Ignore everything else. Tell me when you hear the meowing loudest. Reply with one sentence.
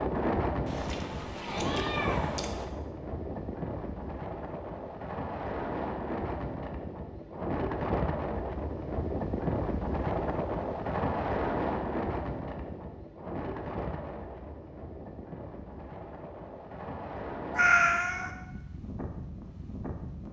The loudest moment of the meowing is at 18 seconds.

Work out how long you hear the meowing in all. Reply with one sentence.
The meowing can be heard for 3 seconds in total.